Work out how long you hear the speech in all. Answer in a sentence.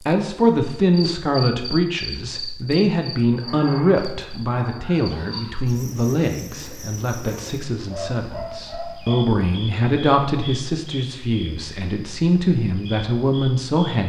You can hear the speech for 14 seconds altogether.